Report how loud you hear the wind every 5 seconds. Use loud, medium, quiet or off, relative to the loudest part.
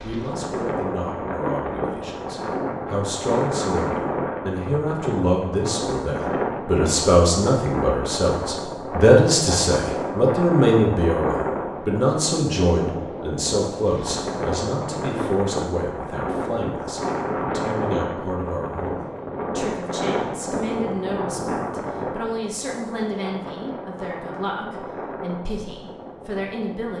loud, loud, loud, loud, loud, medium.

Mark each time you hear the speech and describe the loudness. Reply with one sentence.
The speech can be heard from 0.0 to 26.9 s, getting louder then quieter.